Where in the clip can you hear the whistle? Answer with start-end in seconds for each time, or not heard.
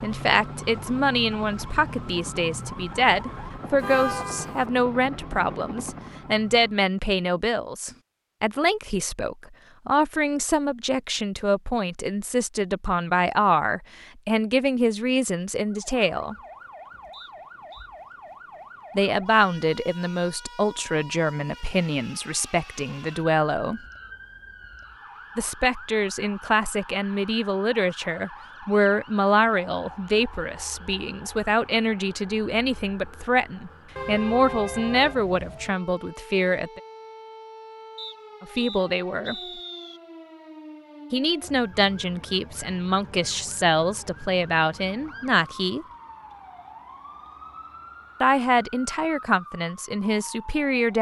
17.1-17.9, 38.0-40.0.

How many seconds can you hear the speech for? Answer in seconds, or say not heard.
41 s.